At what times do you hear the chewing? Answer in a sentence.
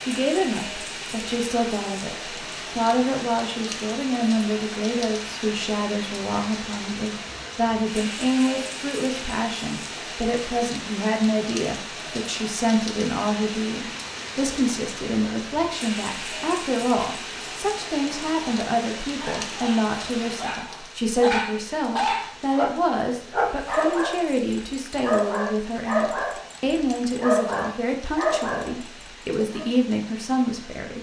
You can't hear the chewing here.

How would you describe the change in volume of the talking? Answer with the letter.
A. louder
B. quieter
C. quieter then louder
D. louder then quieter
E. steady
E.